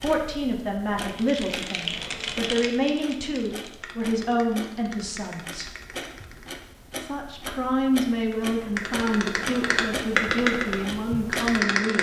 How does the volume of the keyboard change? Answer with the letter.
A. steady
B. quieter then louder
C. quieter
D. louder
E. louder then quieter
B.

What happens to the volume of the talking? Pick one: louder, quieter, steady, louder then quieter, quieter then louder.
steady.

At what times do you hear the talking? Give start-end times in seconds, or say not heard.
0.0-5.8, 7.0-11.9.